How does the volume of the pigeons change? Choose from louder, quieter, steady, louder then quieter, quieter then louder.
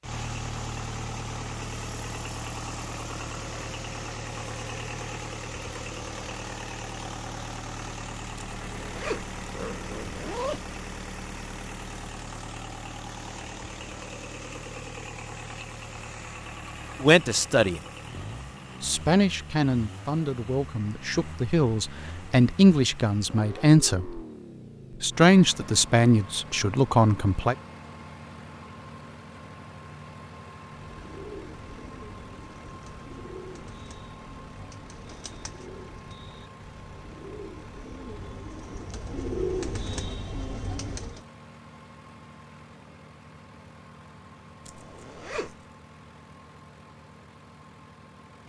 louder.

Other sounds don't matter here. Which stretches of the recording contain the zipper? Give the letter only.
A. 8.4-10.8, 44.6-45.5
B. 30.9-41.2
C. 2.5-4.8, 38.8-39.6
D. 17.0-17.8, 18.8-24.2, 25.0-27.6
A.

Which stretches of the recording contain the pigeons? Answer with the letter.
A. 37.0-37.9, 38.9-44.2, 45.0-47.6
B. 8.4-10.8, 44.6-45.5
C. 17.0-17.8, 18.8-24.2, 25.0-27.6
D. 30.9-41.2
D.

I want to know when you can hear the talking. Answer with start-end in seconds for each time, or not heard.
17.0-17.8, 18.8-24.2, 25.0-27.6.